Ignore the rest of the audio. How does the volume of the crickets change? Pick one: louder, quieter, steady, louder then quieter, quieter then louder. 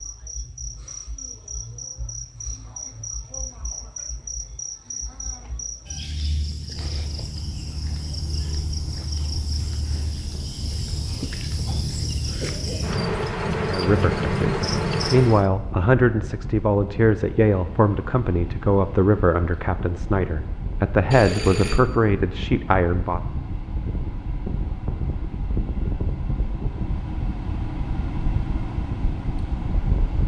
louder.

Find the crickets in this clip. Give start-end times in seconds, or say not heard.
0.0-15.5.